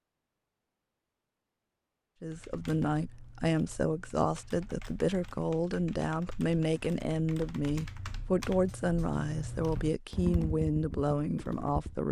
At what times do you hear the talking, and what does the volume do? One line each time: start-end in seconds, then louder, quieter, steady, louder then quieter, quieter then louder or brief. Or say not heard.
2.2-12.0 steady.